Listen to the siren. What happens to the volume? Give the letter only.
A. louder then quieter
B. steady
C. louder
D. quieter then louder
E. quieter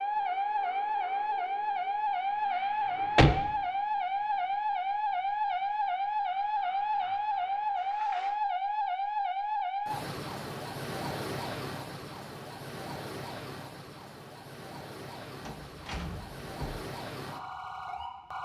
E.